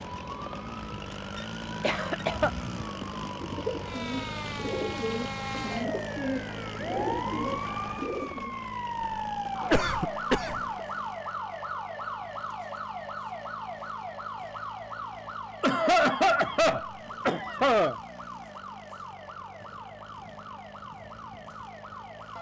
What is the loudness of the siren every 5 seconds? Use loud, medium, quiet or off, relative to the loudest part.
medium, loud, loud, medium, medium.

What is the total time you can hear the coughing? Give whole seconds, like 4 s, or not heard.
5 s.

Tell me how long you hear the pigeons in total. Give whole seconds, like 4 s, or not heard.
5 s.